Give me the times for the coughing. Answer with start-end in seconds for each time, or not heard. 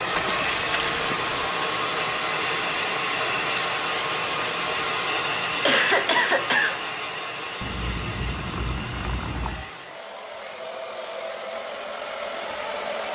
5.7-6.8.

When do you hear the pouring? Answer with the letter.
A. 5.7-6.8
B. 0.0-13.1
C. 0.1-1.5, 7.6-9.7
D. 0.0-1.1
C.